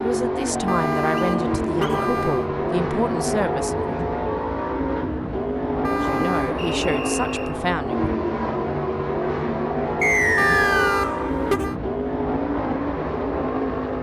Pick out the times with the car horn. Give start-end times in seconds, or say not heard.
0.7-2.5, 5.8-6.5, 10.3-11.8.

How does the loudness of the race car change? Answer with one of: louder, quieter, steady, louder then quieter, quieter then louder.
steady.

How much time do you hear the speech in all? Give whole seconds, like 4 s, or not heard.
6 s.